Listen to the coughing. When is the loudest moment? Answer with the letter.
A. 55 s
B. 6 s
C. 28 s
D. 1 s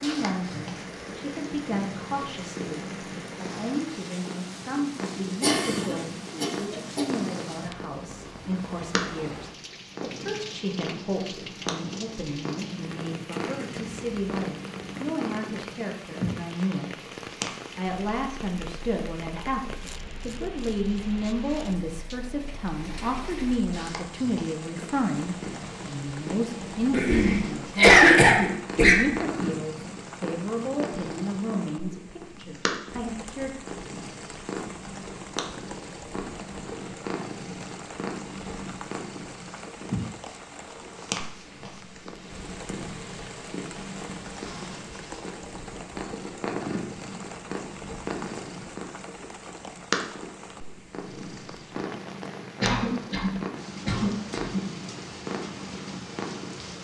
C.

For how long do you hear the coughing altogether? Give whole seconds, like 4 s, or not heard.
6 s.